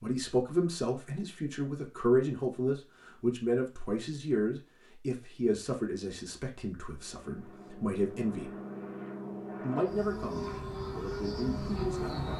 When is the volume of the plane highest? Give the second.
12 s.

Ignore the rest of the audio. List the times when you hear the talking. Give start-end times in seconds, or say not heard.
0.0-8.6, 9.6-12.2.